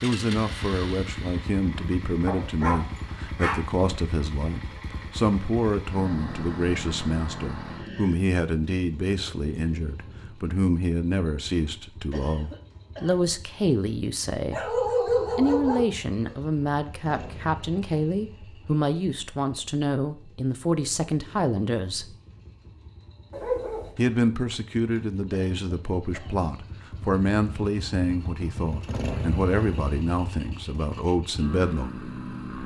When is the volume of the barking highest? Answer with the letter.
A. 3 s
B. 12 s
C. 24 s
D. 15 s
D.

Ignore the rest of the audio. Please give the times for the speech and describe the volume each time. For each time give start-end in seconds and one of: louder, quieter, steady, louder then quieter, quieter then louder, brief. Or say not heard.
0.0-22.1 steady
23.9-31.9 steady.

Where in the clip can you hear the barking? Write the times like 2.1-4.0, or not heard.
2.2-3.5, 14.5-16.4, 23.3-23.9.